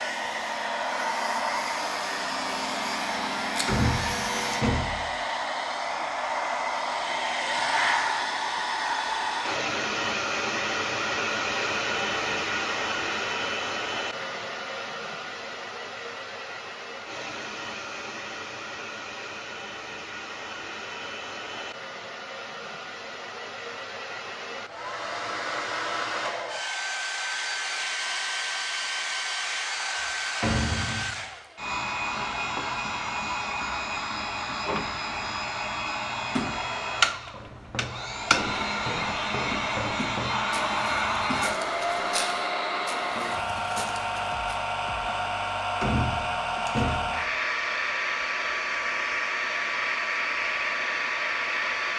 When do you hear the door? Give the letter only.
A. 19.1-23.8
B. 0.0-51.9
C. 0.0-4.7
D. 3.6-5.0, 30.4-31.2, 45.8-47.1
D.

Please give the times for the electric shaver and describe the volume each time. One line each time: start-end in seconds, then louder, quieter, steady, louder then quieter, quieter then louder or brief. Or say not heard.
0.0-4.7 louder.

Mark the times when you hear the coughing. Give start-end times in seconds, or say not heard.
not heard.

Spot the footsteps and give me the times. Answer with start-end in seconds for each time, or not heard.
37.3-44.4.